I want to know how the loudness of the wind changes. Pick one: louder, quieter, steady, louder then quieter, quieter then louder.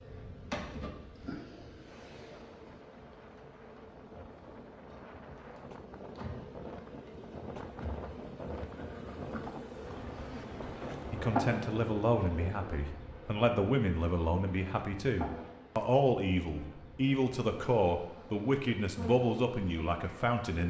louder.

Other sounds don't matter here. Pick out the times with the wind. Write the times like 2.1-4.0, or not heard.
0.0-12.8.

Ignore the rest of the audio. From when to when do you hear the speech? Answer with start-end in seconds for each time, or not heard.
11.1-20.6.